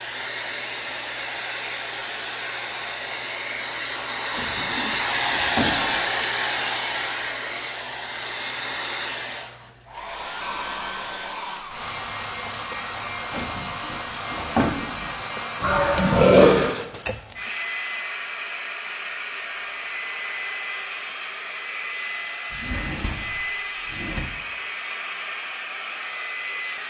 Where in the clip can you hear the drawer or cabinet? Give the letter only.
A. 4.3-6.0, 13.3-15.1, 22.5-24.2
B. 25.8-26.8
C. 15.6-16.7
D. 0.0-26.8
A.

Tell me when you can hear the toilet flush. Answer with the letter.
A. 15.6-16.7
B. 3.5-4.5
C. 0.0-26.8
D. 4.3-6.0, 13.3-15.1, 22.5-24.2
A.